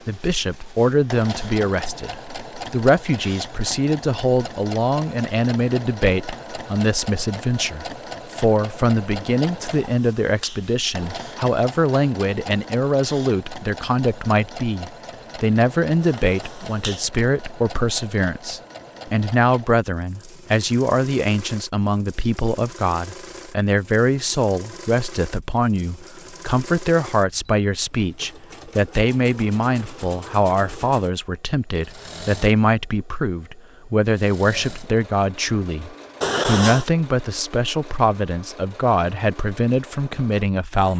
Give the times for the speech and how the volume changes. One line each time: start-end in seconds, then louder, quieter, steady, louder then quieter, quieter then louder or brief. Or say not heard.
0.1-40.9 steady.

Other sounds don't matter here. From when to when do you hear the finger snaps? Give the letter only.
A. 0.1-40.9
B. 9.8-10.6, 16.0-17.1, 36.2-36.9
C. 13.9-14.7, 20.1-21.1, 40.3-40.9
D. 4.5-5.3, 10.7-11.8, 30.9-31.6
B.